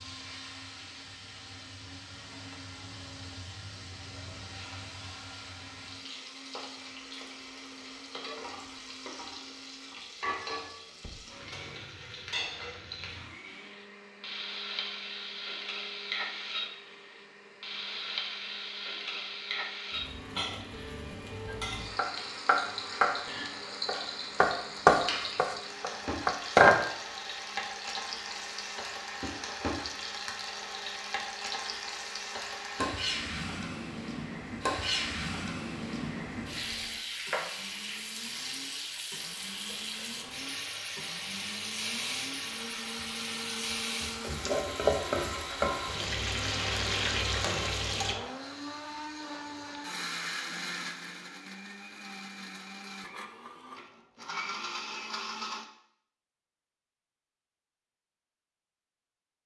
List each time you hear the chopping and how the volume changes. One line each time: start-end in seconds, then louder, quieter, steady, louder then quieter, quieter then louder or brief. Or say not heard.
21.4-26.9 louder then quieter.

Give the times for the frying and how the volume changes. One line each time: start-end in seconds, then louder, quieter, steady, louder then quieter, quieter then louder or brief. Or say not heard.
0.0-48.1 louder.